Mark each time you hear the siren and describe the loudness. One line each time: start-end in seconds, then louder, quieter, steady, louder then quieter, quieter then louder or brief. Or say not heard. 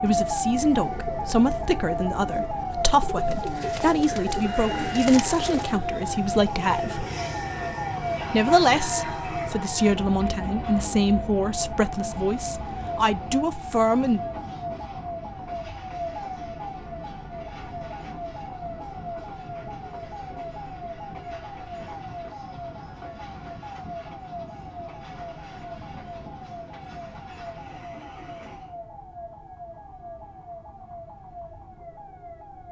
0.0-32.6 quieter.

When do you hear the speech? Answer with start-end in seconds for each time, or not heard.
0.0-7.0, 8.3-14.2.